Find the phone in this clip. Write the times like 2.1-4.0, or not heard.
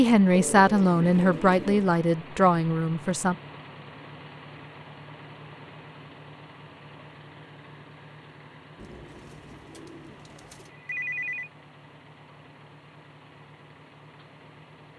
10.7-11.5.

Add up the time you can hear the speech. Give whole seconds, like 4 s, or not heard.
3 s.